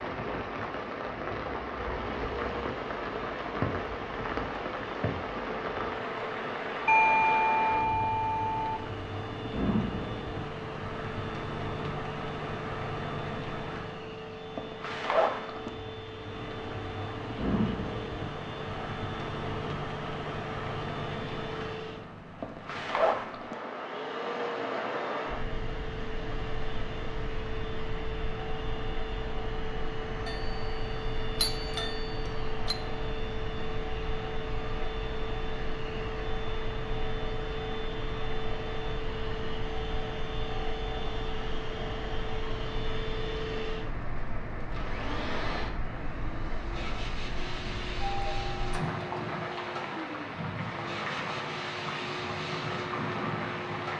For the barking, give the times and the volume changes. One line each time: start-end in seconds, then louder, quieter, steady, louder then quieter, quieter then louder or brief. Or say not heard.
not heard.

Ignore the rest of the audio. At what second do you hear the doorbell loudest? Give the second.
7 s.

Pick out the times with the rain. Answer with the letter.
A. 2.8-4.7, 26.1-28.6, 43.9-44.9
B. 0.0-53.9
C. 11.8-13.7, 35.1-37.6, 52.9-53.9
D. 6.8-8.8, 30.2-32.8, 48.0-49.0
B.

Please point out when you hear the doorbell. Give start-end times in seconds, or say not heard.
6.8-8.8, 30.2-32.8, 48.0-49.0.